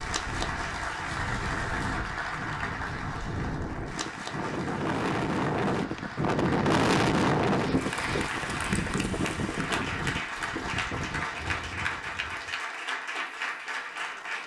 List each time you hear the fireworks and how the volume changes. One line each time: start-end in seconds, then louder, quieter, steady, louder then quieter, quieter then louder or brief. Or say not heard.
not heard.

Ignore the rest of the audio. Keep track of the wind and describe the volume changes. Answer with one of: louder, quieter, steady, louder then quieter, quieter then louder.
louder then quieter.